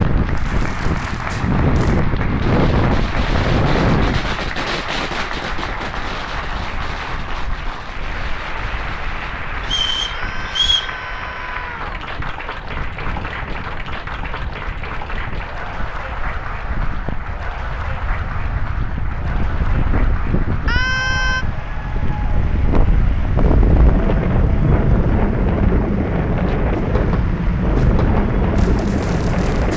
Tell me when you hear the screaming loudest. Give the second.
21 s.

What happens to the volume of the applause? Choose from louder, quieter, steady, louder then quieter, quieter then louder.
quieter.